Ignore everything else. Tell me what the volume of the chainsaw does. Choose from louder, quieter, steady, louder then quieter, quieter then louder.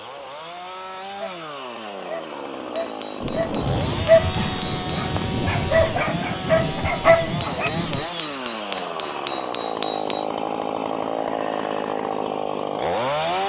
louder.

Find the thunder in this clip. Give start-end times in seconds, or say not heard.
3.2-8.1.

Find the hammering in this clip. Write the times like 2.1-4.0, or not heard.
2.8-5.1, 7.4-10.2.